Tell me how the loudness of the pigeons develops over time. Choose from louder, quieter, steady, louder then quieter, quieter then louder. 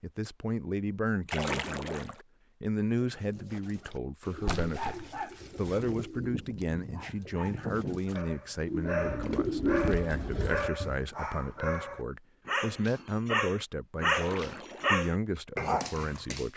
quieter then louder.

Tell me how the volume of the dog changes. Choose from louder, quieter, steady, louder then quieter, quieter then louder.
louder.